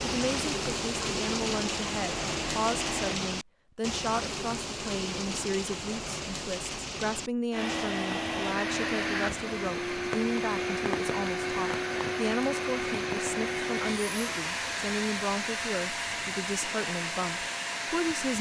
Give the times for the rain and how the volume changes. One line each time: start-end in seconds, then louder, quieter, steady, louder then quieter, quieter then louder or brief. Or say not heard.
0.0-18.3 quieter.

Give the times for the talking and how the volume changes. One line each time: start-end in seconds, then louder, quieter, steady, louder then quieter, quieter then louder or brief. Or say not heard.
0.0-18.3 steady.